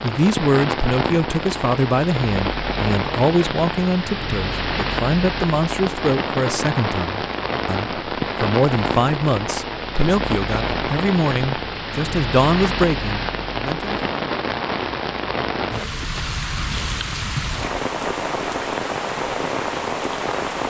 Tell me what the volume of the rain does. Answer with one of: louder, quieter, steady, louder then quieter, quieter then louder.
steady.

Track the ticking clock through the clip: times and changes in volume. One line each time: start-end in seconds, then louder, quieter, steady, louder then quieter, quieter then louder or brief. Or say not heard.
not heard.